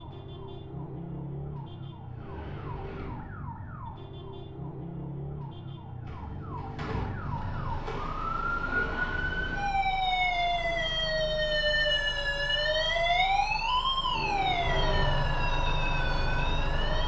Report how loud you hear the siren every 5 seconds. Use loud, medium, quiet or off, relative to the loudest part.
quiet, medium, loud, medium.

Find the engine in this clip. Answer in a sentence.
The engine can be heard from 7.1 to 17.0 s.